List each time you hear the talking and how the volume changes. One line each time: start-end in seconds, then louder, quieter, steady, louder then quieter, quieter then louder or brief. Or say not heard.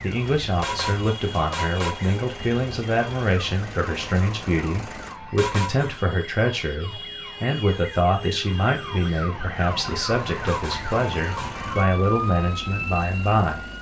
0.0-13.7 steady.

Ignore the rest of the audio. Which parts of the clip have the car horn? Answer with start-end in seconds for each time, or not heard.
0.6-2.2, 5.3-6.0, 10.4-11.6.